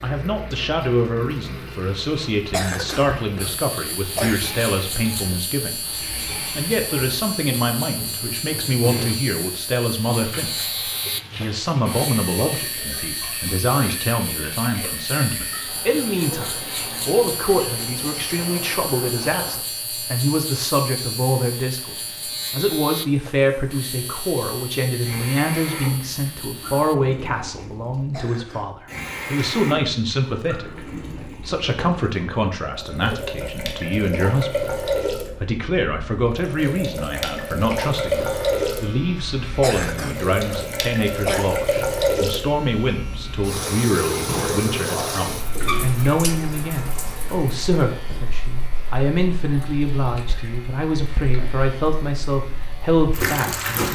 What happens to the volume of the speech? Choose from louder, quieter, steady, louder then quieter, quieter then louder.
steady.